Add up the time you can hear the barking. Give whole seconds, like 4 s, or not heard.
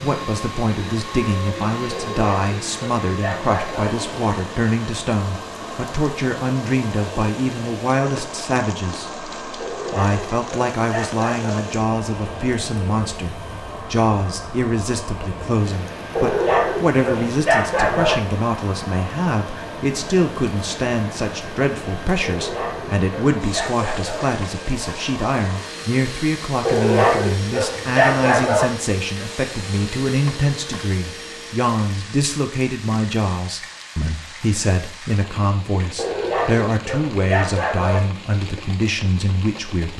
12 s.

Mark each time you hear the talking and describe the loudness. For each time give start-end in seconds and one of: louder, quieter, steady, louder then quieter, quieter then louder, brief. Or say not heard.
0.0-9.2 steady
9.9-39.9 steady.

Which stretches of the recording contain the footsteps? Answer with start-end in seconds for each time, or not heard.
not heard.